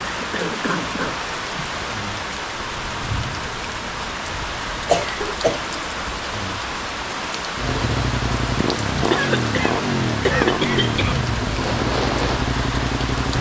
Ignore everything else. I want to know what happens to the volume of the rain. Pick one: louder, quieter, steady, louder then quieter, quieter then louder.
steady.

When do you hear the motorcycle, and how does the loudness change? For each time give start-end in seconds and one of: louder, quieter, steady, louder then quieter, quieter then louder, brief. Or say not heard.
7.5-13.3 steady.